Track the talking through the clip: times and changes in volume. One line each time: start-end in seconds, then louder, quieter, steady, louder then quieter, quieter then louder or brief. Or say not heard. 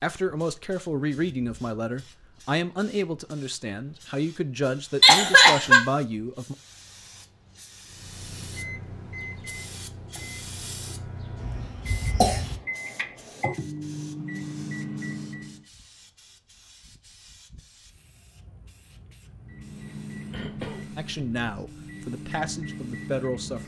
0.0-6.5 steady
20.9-23.6 brief.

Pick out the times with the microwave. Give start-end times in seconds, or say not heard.
7.8-15.7, 19.4-23.6.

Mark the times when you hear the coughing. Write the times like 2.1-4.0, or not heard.
5.0-5.8, 11.4-12.6, 20.3-21.5.